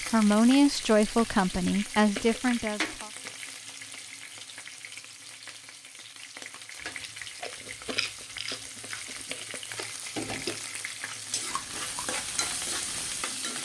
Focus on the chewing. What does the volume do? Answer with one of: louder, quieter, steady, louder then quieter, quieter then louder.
quieter.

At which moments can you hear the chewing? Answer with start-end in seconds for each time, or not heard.
6.8-13.2.